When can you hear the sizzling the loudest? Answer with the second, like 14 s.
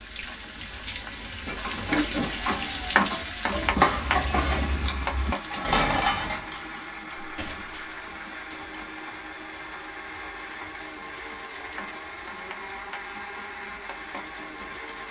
3 s.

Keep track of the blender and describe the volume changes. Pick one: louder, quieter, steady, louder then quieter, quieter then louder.
steady.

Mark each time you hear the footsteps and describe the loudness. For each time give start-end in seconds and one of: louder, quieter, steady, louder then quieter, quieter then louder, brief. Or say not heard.
not heard.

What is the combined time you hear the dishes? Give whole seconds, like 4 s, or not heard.
5 s.